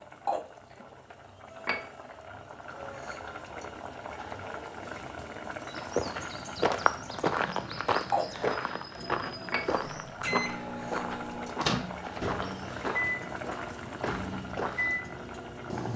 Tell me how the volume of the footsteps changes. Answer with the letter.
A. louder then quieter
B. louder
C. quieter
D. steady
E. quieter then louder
C.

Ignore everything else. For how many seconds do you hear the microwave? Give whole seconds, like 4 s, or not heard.
7 s.